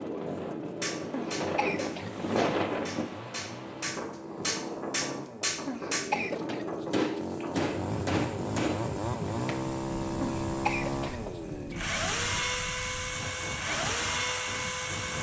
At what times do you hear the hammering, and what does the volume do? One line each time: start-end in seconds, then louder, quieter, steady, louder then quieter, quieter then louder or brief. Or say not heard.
0.8-9.6 louder.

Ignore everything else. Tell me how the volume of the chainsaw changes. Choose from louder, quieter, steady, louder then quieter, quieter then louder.
louder.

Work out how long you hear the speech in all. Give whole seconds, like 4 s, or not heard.
not heard.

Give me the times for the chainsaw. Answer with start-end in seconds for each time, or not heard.
0.0-15.1.